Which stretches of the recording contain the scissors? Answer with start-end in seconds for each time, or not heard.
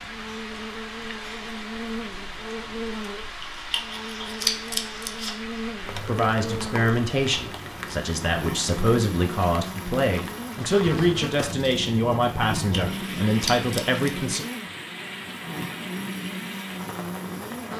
3.4-5.3, 12.6-14.2.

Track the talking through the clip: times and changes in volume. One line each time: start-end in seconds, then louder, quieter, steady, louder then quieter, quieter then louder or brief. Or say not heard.
6.0-14.4 steady.